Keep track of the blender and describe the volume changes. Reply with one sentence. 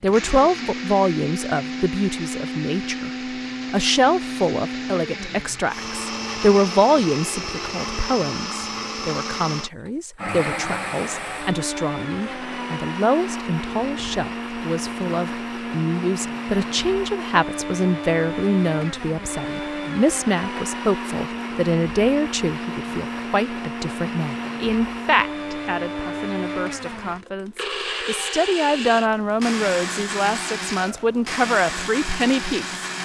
The loudness of the blender stays about the same.